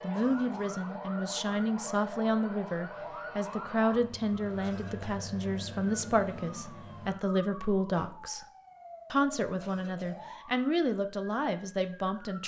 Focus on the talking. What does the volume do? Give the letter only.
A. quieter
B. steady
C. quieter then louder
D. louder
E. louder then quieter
B.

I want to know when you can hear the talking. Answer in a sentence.
The talking can be heard from 0.0 to 8.4 s and from 9.1 to 12.4 s.